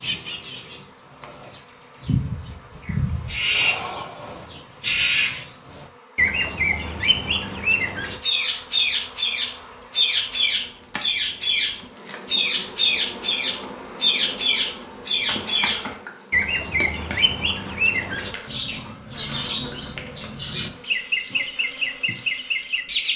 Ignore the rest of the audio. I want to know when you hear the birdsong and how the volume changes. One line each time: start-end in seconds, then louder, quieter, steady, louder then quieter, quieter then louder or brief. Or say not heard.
0.0-23.1 steady.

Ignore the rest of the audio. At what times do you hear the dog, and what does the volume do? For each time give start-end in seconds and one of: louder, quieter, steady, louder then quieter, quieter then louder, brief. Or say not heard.
not heard.